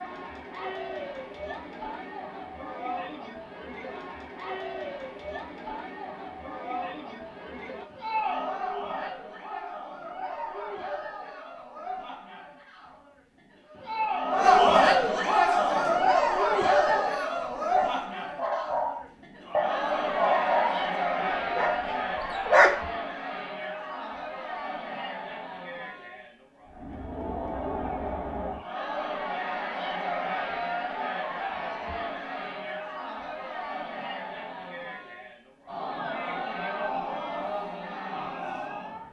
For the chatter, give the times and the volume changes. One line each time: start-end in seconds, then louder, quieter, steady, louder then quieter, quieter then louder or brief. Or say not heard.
0.0-39.0 louder then quieter.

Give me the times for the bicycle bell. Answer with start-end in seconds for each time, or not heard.
not heard.